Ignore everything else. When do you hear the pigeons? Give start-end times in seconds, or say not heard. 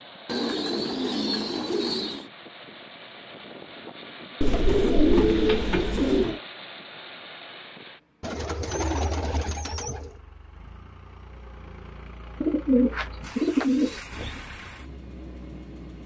0.2-2.3, 4.4-6.4, 8.2-10.2, 12.4-14.3.